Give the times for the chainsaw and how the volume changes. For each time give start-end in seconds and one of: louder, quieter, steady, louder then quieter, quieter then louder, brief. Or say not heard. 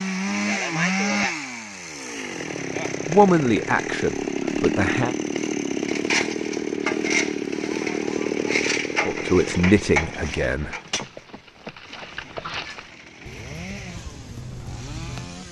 0.0-15.4 quieter.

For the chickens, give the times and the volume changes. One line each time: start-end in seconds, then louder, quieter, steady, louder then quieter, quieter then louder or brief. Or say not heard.
not heard.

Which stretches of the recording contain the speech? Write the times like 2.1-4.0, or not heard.
3.0-5.2, 9.1-10.8.